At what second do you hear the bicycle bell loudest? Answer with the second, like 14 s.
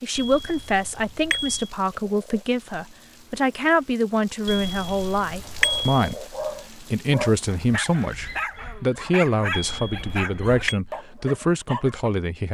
6 s.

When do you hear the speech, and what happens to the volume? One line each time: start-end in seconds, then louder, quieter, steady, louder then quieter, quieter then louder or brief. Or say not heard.
0.0-12.4 steady.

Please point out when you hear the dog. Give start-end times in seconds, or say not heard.
5.5-12.1.